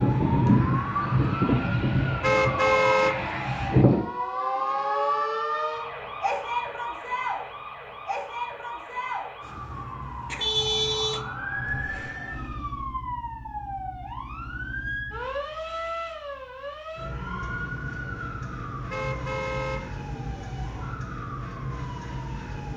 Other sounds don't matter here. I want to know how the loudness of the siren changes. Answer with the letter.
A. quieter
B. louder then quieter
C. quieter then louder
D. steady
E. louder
A.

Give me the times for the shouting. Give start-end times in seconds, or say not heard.
not heard.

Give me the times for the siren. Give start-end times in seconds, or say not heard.
0.0-22.7.